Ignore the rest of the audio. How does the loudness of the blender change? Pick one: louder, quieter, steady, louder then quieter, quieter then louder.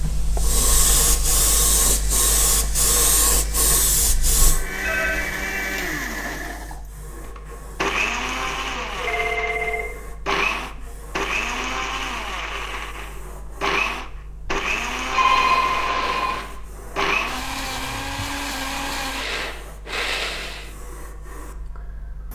steady.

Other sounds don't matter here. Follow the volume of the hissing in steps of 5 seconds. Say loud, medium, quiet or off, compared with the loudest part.
loud, quiet, quiet, quiet, quiet.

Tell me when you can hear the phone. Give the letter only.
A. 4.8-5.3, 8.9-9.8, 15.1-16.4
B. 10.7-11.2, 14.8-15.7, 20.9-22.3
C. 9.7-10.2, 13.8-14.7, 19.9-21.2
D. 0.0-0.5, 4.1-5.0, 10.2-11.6
A.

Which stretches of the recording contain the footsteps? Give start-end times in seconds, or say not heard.
not heard.